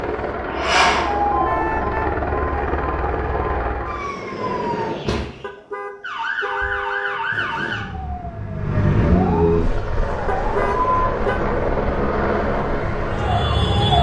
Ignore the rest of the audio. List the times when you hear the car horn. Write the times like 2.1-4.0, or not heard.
1.4-2.2, 5.4-7.2, 10.2-11.4.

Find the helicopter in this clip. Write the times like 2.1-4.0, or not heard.
0.0-4.2, 9.4-13.9.